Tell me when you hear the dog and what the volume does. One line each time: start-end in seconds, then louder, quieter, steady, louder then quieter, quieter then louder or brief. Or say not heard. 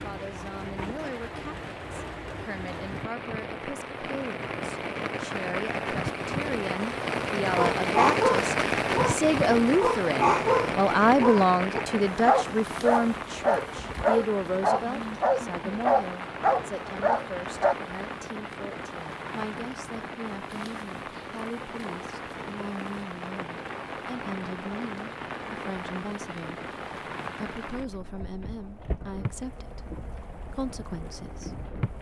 7.5-17.8 steady.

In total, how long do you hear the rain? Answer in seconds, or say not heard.
32 s.